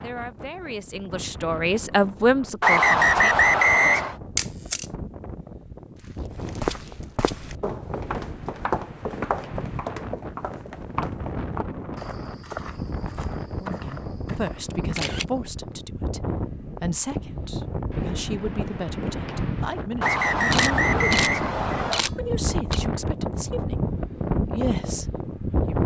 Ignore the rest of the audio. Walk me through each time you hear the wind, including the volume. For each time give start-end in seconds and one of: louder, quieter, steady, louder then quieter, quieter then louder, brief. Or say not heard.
0.0-25.8 louder.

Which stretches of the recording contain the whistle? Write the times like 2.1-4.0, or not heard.
2.6-4.2, 20.0-22.0.